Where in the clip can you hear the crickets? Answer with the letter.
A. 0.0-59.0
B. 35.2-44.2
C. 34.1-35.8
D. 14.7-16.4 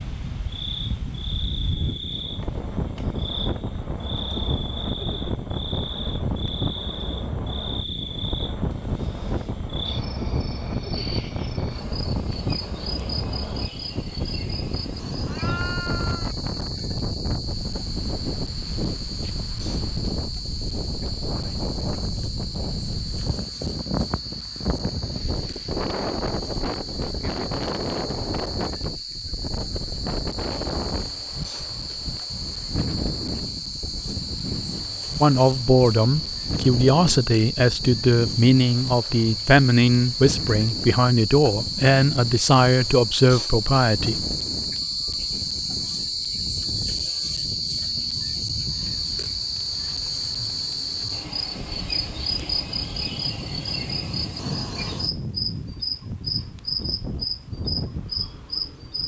A.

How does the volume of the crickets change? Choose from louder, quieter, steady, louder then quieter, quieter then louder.
louder.